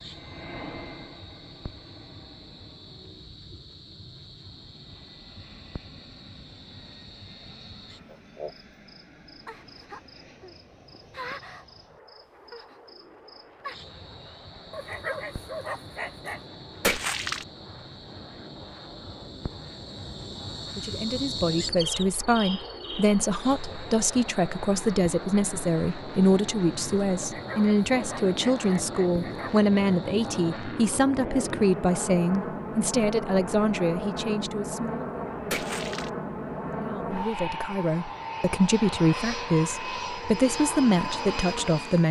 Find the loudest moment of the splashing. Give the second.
17 s.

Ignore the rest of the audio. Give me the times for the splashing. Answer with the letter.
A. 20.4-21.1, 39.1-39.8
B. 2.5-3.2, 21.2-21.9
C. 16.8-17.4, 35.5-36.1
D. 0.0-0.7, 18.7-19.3
C.